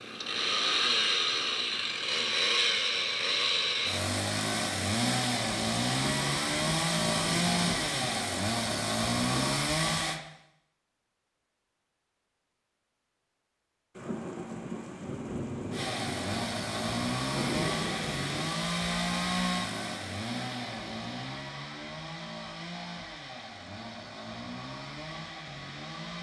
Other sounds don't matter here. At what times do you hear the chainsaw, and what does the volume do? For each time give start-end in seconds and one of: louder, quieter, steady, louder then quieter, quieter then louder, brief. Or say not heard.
0.0-10.2 steady
15.7-26.1 quieter.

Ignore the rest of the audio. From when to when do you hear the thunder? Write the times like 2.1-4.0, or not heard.
6.0-9.6, 13.9-18.5.